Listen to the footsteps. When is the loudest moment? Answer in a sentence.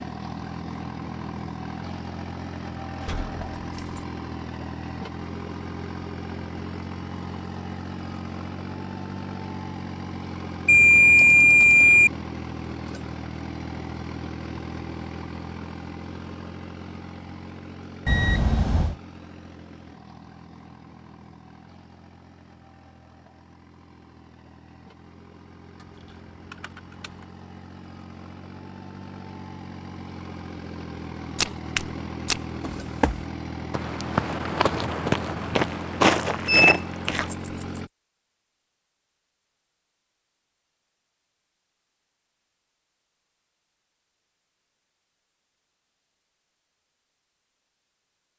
The loudest moment of the footsteps is at 36 seconds.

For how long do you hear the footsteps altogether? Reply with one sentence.
You can hear the footsteps for 6 seconds altogether.